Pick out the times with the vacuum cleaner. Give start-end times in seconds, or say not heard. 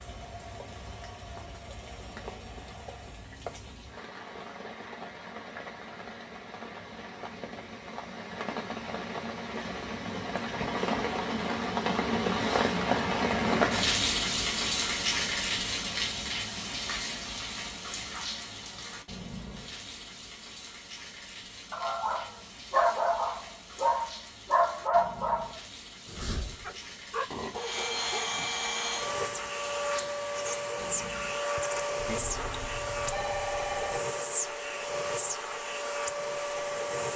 0.0-3.3, 27.5-37.1.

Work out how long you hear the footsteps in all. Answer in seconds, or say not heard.
not heard.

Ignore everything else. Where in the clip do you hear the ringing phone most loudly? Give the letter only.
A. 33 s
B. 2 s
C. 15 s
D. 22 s
A.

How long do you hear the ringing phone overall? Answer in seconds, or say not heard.
2 s.